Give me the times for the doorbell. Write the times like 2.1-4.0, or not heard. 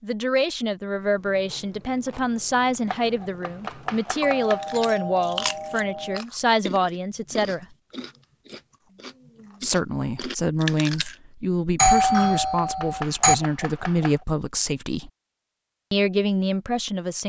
4.2-6.2, 11.8-13.3.